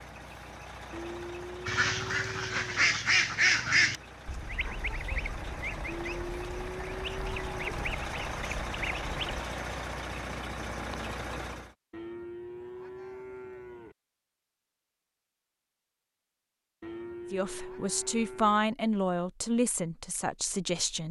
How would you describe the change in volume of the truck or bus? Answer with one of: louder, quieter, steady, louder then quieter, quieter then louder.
louder.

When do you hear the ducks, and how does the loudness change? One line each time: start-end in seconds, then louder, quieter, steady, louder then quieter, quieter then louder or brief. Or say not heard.
1.6-9.2 quieter.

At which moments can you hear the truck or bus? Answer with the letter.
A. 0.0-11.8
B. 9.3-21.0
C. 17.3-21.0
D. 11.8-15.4
A.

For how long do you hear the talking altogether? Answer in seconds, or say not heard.
4 s.